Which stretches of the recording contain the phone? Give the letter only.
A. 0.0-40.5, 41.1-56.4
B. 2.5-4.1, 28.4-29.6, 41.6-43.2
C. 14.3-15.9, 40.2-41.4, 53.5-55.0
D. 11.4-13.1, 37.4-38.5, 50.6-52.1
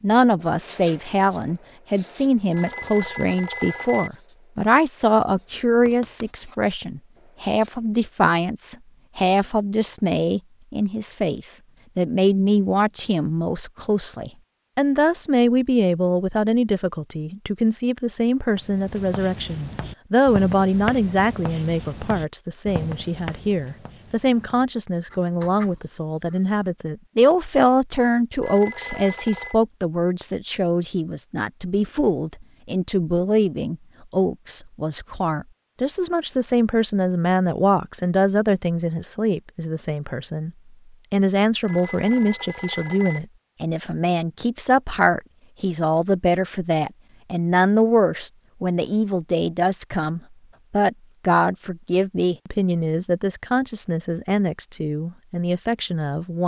B.